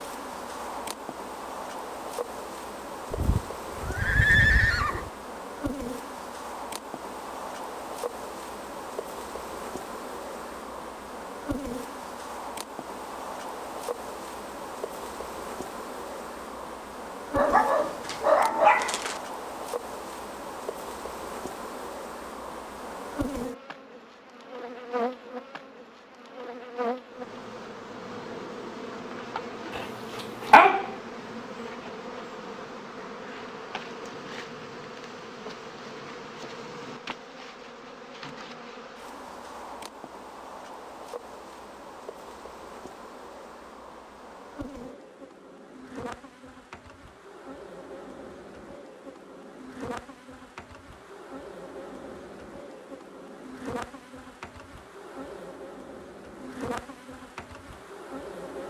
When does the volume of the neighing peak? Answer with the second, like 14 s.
4 s.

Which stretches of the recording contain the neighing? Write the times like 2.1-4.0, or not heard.
3.1-5.1.